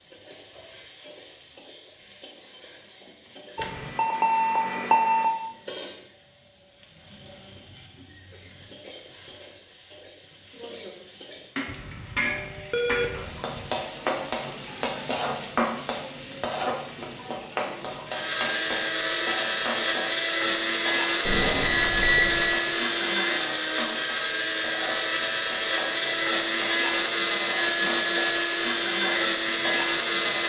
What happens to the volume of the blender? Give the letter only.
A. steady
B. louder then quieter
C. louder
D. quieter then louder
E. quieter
A.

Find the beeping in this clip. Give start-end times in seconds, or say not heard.
3.5-5.2, 11.7-13.7, 21.2-22.6.